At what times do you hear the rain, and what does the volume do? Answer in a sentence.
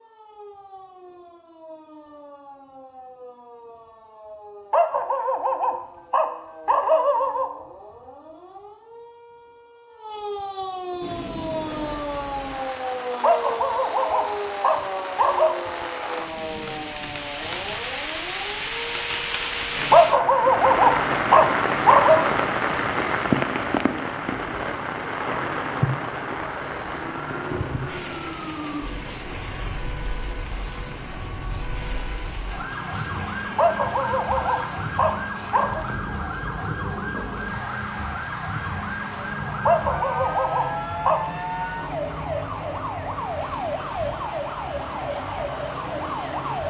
You can hear the rain from 11.0 to 46.6 s, getting louder then quieter.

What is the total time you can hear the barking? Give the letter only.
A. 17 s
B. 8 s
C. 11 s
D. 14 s
C.